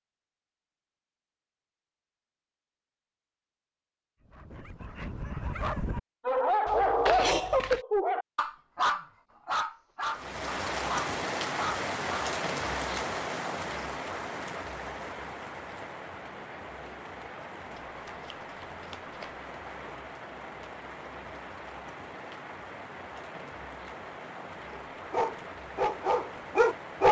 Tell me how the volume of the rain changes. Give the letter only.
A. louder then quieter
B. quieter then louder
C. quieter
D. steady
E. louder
C.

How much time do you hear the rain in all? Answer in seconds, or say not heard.
17 s.